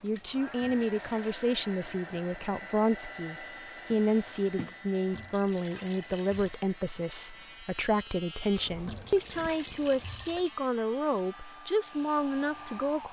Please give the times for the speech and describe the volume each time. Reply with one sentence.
The speech can be heard from 0.0 to 13.0 s, at a steady volume.